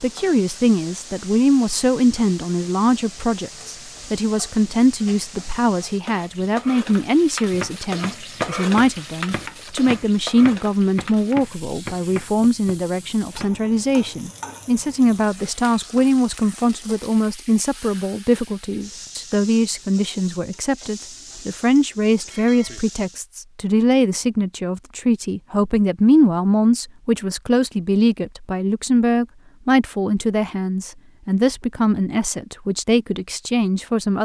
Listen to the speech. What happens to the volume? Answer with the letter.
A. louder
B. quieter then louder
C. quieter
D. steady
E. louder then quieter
D.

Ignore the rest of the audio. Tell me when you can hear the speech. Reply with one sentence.
The speech can be heard from 0.0 to 34.2 s.